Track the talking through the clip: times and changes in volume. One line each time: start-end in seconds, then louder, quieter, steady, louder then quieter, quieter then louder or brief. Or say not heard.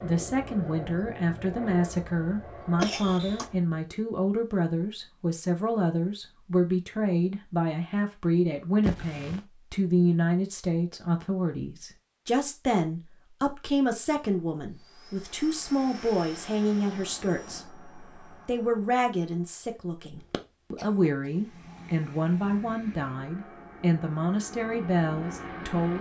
0.0-25.9 steady.